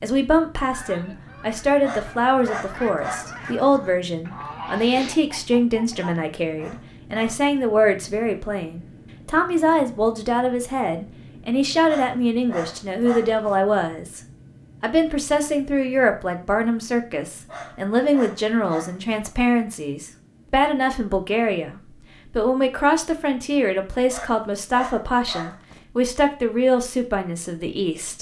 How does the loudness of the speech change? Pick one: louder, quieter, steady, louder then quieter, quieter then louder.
steady.